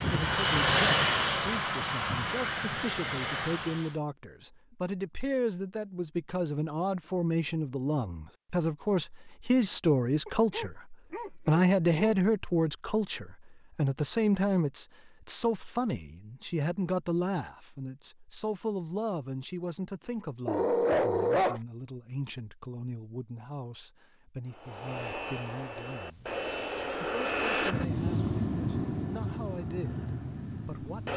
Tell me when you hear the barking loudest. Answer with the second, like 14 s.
21 s.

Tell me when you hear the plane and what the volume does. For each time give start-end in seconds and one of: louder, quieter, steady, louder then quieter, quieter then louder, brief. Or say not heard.
0.0-4.0 quieter
24.5-31.1 louder then quieter.